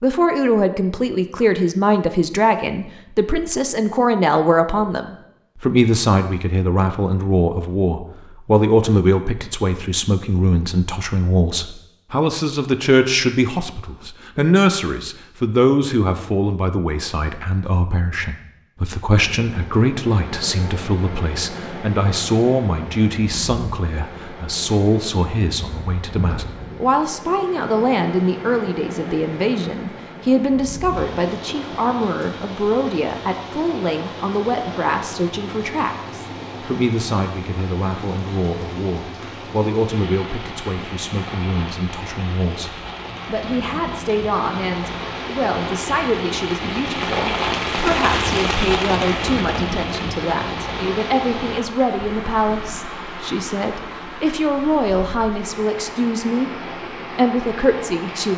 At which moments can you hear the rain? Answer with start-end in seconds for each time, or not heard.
19.1-58.3.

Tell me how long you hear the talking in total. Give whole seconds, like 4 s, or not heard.
58 s.